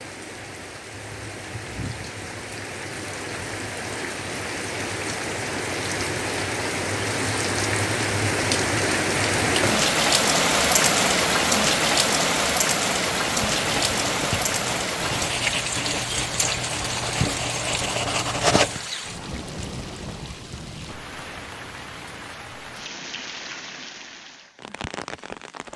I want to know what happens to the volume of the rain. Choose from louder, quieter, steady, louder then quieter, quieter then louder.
louder then quieter.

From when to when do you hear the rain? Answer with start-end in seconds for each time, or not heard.
0.0-25.7.